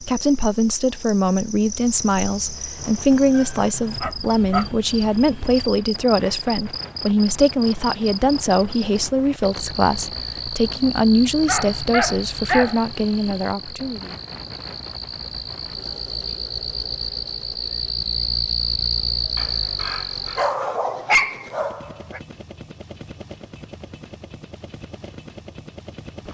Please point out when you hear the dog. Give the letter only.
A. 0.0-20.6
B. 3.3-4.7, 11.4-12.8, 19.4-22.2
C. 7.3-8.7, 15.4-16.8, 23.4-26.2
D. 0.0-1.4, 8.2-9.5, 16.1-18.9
B.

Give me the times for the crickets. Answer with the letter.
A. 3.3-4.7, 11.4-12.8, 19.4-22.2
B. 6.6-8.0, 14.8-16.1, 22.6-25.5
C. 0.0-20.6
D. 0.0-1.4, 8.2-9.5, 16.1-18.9
C.